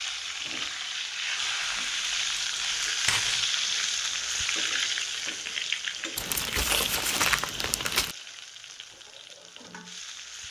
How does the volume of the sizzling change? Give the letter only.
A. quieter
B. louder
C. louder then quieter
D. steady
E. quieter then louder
A.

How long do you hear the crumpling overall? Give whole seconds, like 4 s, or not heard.
4 s.